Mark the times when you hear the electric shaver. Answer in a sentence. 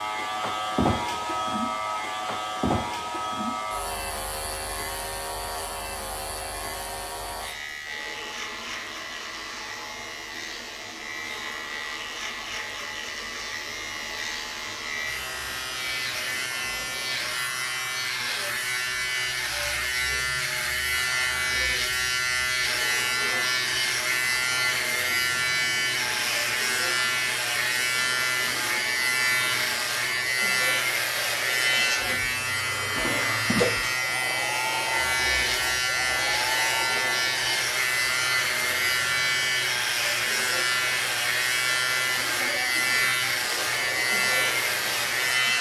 The electric shaver can be heard from 0.0 to 45.5 s.